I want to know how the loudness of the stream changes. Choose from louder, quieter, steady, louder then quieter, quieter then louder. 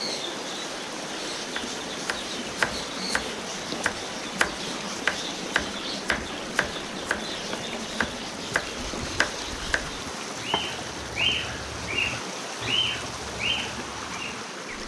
steady.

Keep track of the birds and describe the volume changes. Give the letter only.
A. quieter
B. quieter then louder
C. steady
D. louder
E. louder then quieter
D.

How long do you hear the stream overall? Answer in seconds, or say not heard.
15 s.